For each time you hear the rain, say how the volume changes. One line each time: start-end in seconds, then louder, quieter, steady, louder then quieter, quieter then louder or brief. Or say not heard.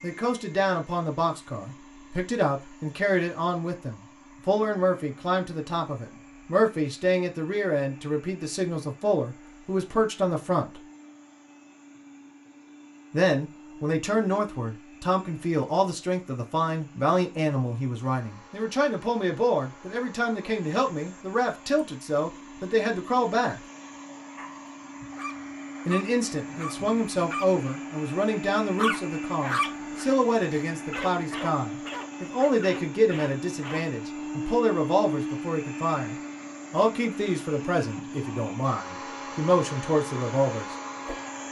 not heard.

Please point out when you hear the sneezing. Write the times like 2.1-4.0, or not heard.
not heard.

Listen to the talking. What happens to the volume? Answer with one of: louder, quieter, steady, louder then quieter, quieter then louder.
steady.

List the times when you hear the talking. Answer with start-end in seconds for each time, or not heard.
0.0-10.8, 13.1-23.6, 25.9-40.8.